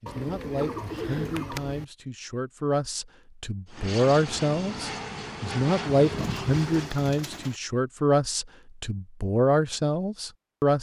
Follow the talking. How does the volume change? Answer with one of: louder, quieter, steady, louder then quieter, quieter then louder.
louder.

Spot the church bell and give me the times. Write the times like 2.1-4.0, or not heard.
not heard.